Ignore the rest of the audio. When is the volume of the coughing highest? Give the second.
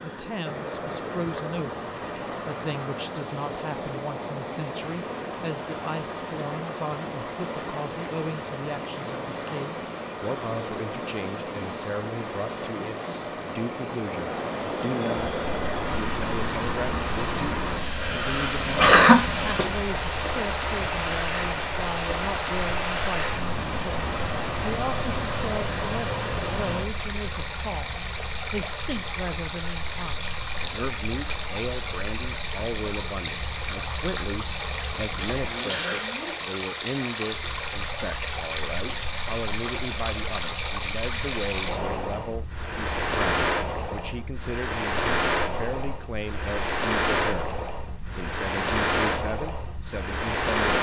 19 s.